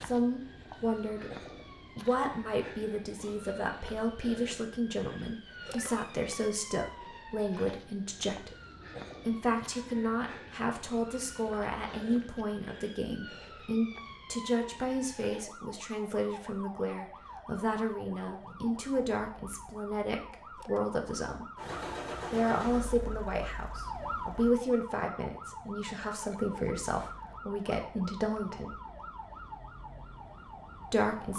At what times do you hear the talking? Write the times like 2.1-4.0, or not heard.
0.0-1.3, 1.9-8.6, 9.2-21.4, 22.3-28.8, 30.9-31.3.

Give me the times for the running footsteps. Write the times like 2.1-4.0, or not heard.
not heard.